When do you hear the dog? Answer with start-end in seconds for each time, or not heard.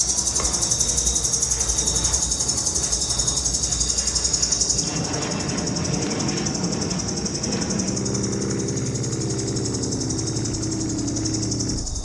not heard.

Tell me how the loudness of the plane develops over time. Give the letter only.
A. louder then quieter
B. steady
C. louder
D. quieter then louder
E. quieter
C.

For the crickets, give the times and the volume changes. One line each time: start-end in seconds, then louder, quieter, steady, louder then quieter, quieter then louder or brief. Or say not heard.
0.0-11.9 quieter.